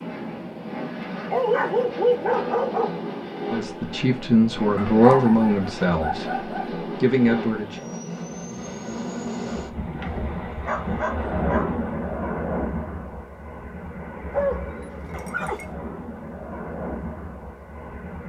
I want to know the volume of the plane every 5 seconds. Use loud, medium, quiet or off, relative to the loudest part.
loud, loud, loud, medium.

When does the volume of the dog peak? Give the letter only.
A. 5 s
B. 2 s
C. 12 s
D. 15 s
B.